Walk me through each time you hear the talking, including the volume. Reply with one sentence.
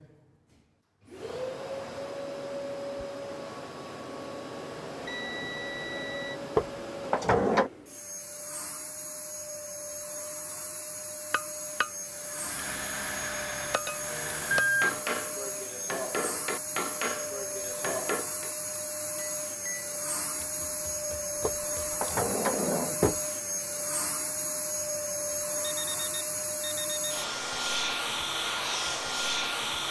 You can't hear the talking here.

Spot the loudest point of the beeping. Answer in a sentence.
The loudest moment of the beeping is at 15 seconds.